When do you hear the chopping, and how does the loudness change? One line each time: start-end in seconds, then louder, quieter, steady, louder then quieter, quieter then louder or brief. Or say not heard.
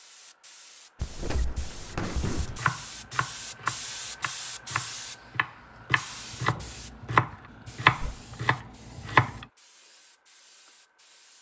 2.4-9.4 quieter then louder.